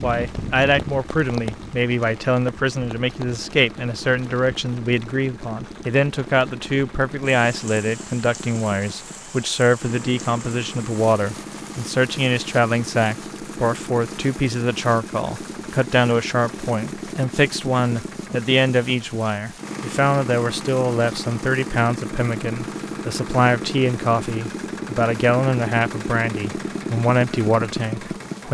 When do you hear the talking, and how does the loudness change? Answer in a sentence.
The talking can be heard from 0.0 to 28.4 s, at a steady volume.